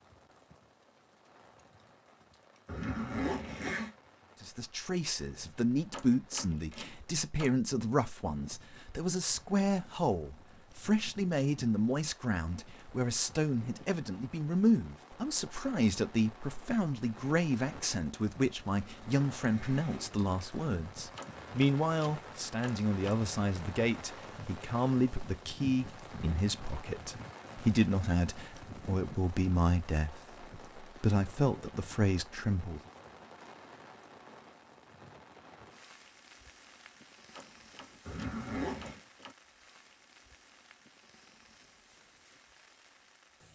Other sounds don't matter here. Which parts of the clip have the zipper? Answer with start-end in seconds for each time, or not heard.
2.6-3.9, 18.8-20.2, 38.0-39.0.